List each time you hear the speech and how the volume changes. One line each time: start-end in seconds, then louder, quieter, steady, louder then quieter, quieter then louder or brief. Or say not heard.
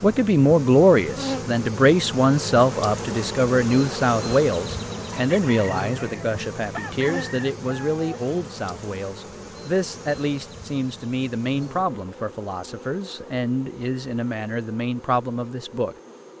0.0-15.9 quieter.